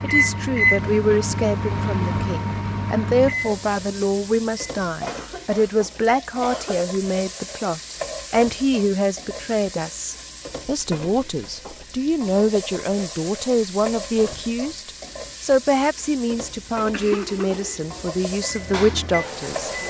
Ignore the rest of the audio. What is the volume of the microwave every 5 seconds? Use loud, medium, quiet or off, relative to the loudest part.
loud, off, off, medium.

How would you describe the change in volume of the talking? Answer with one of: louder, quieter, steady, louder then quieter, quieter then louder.
steady.